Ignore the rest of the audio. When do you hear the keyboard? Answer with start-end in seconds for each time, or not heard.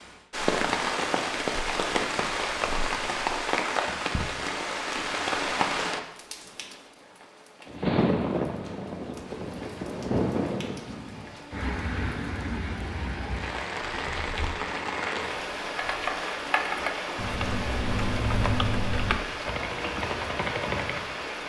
14.0-21.2.